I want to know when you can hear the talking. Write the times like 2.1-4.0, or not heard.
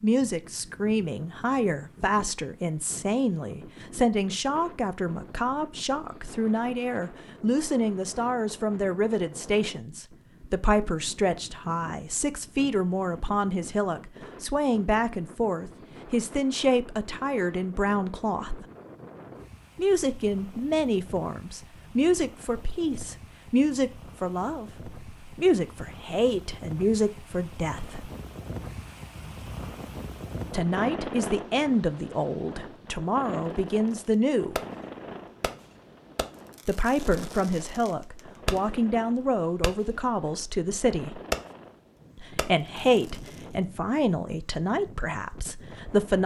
0.0-18.6, 19.8-28.1, 30.5-34.5, 36.6-41.2, 42.1-46.2.